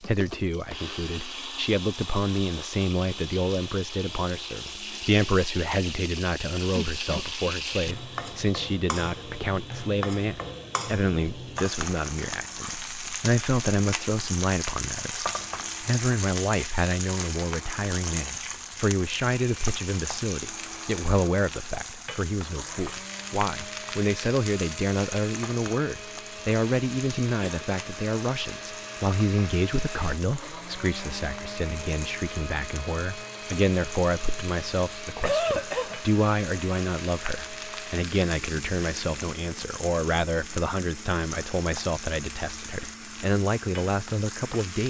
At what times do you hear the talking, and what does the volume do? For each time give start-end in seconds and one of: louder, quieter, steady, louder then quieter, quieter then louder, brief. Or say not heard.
0.0-44.8 steady.